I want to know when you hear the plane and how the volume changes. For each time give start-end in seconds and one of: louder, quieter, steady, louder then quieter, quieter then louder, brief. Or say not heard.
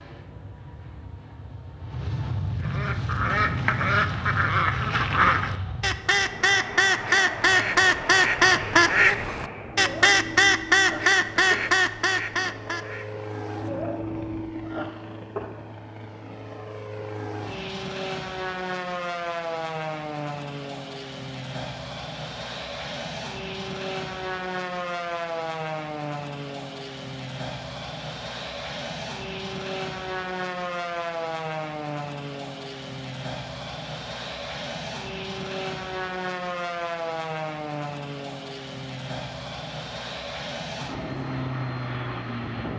0.0-42.7 steady.